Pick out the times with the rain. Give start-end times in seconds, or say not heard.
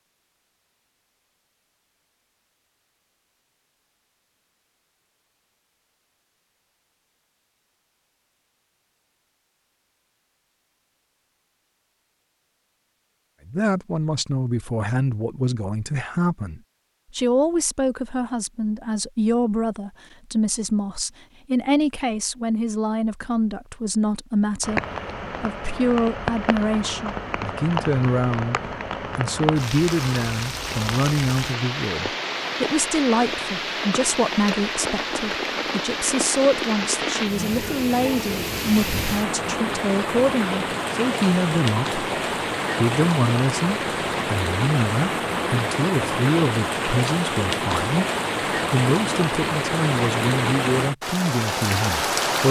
24.6-52.4.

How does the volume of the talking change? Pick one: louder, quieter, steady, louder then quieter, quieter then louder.
steady.